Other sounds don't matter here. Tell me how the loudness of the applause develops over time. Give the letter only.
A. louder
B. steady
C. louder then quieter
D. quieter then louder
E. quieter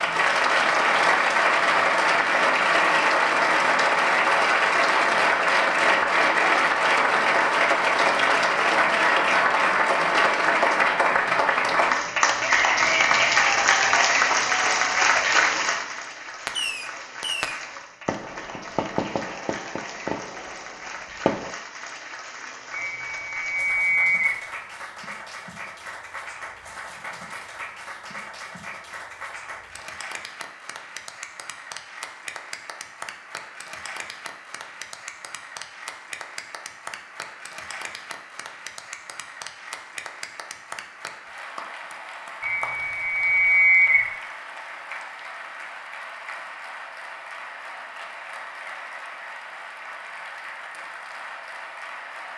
E.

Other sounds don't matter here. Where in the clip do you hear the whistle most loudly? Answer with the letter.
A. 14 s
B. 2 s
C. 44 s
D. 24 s
C.